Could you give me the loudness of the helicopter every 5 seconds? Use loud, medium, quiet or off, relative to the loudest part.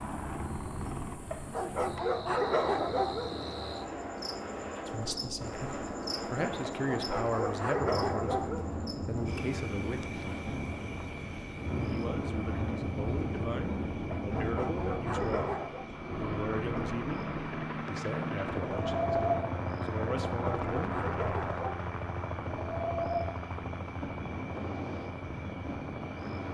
medium, off, off, loud, loud, medium.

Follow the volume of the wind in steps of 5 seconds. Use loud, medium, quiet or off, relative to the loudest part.
medium, loud, loud, loud, loud, medium.